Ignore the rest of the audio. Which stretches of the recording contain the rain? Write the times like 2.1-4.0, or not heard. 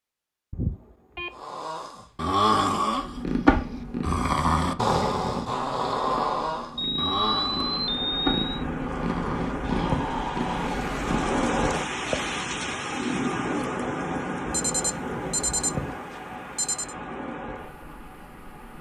7.5-18.7.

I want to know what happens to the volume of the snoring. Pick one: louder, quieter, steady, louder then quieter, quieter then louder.
quieter.